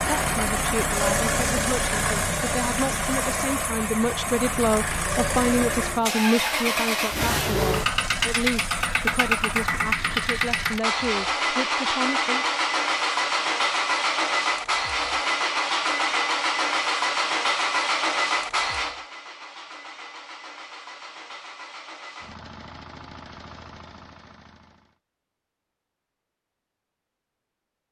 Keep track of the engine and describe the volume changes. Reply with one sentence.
The volume of the engine goes down.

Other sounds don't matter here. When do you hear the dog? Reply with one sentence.
You can't hear the dog here.